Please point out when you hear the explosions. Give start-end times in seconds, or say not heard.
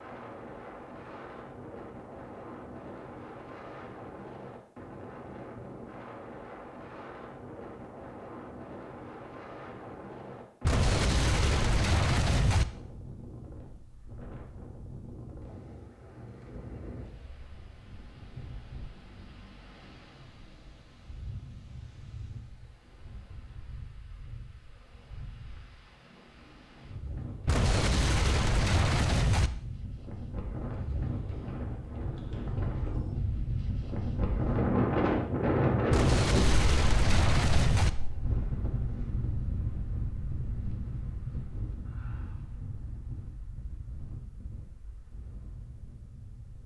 10.6-12.7, 27.4-29.5, 35.9-37.9.